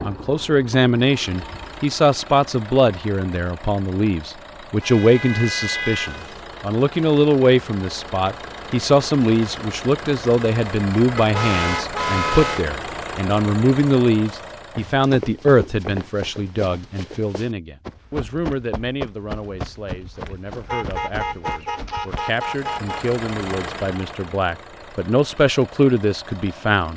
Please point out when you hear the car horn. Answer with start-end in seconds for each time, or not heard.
4.8-6.4, 11.2-12.7, 20.6-23.1.